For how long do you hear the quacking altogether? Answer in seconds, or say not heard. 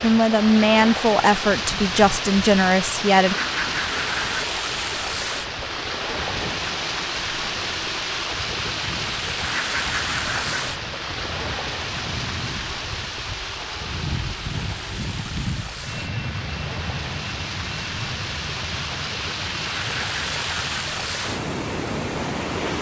3 s.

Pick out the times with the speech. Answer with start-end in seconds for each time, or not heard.
0.0-3.4.